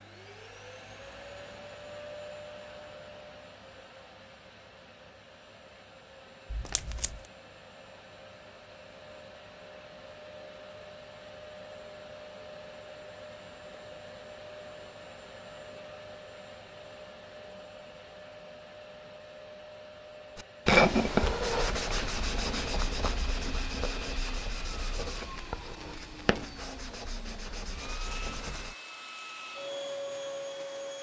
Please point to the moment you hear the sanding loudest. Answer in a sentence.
The loudest moment of the sanding is at 21 seconds.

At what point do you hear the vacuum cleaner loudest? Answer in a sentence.
The volume of the vacuum cleaner peaks at 30 seconds.